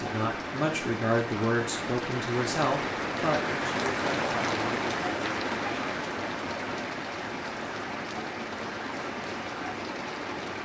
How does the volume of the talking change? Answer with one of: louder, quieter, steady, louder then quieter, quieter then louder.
quieter.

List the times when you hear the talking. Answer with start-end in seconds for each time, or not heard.
0.0-4.8.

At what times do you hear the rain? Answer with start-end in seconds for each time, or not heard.
0.0-10.6.